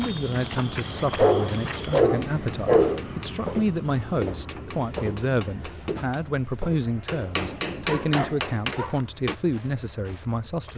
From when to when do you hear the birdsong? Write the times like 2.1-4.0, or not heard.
not heard.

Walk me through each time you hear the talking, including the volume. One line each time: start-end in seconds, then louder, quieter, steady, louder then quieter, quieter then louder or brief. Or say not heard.
0.0-10.7 steady.